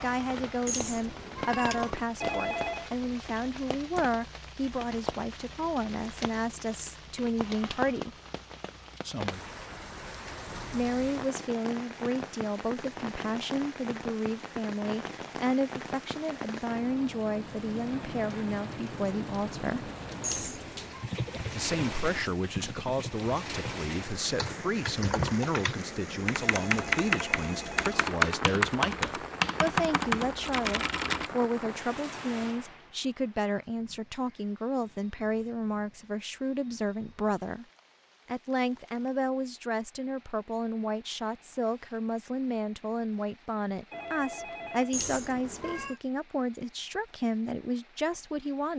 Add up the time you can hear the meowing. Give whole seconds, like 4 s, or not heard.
3 s.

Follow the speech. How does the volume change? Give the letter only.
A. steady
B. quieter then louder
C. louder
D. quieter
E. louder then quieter
A.